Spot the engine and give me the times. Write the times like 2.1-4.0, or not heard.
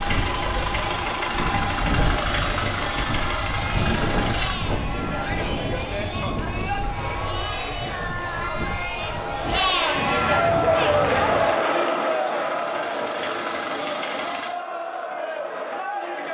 0.0-4.6, 10.4-14.6.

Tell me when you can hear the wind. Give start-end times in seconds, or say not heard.
0.0-11.5.